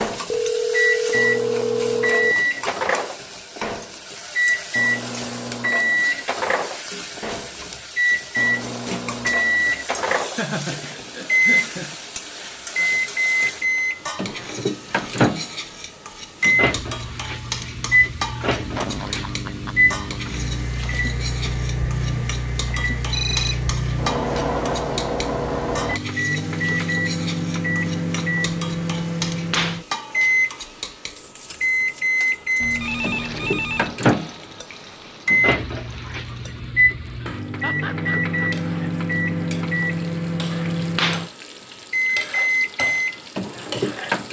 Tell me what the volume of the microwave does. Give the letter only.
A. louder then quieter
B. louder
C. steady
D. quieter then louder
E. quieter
C.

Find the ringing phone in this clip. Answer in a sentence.
The ringing phone can be heard from 0.3 to 2.4 s, from 23.1 to 23.6 s and from 32.6 to 34.0 s.